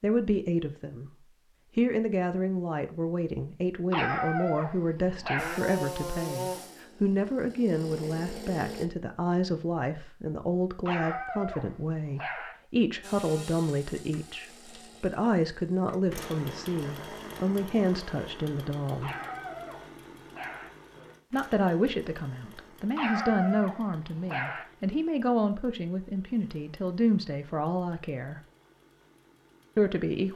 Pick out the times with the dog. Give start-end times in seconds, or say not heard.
3.9-5.6, 10.8-12.6, 19.0-20.7, 22.9-24.6.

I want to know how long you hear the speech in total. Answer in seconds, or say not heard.
27 s.